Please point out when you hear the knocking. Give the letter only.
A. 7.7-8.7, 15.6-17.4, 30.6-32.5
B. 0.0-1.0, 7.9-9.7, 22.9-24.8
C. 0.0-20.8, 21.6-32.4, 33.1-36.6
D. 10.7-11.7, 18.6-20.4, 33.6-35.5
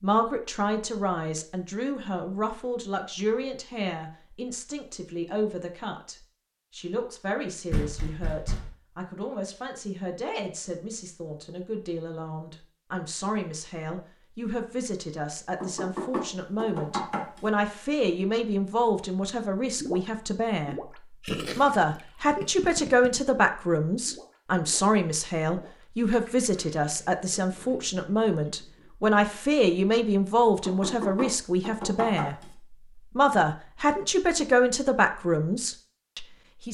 A.